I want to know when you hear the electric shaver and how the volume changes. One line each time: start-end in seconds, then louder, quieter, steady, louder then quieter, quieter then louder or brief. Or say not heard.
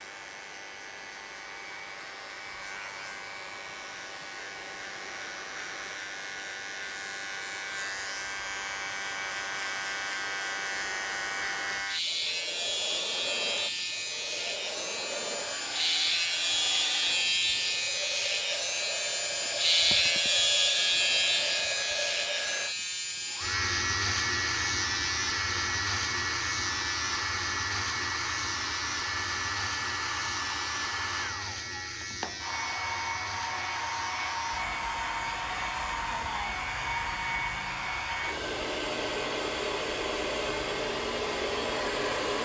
0.0-42.4 louder then quieter.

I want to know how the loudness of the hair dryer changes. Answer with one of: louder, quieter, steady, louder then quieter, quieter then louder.
louder.